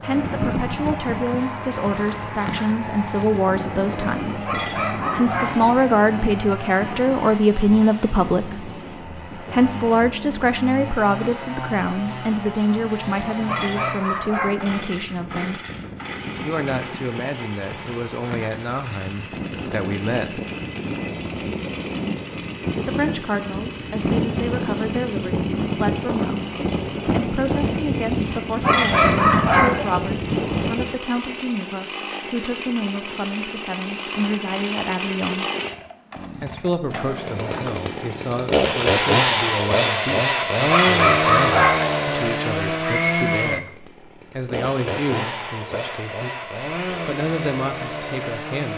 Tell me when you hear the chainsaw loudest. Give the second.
39 s.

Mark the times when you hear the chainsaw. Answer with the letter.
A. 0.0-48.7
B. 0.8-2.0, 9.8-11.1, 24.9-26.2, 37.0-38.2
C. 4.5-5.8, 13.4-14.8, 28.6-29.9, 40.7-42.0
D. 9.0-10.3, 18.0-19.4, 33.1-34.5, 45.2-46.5
A.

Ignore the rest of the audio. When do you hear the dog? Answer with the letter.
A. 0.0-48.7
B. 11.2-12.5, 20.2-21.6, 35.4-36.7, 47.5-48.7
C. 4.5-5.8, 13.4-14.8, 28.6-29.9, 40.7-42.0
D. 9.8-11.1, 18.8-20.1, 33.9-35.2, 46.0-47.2
C.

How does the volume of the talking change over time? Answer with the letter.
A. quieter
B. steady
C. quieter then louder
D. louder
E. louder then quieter
A.